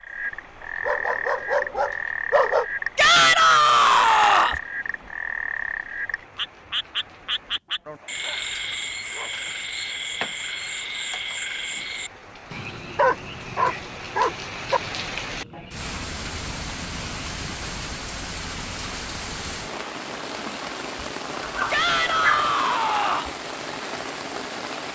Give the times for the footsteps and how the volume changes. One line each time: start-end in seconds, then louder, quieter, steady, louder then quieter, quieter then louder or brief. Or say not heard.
not heard.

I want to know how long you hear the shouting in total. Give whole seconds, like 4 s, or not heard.
3 s.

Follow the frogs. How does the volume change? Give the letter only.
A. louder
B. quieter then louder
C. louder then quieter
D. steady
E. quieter
E.